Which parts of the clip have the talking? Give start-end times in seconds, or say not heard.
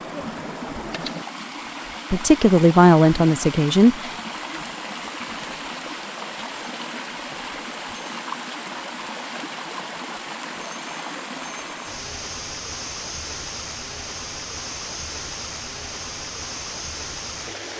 2.1-4.1.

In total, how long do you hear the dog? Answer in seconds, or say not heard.
not heard.